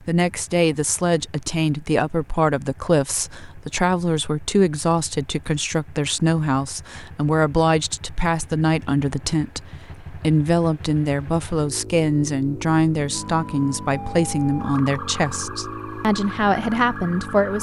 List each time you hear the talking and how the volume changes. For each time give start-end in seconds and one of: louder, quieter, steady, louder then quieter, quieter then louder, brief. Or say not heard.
0.1-17.5 steady.